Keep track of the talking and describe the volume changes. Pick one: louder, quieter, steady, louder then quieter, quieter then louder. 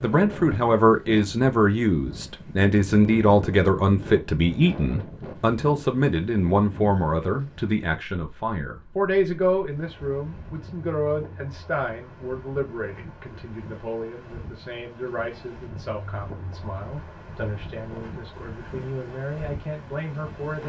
quieter.